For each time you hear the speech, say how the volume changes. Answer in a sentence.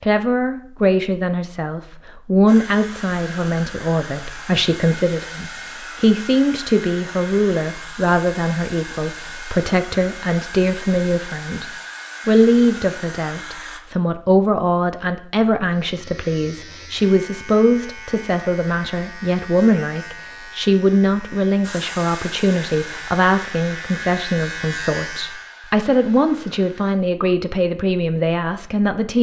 You can hear the speech from 0.0 to 11.7 s, at a steady volume; and from 12.2 to 29.1 s, at a steady volume.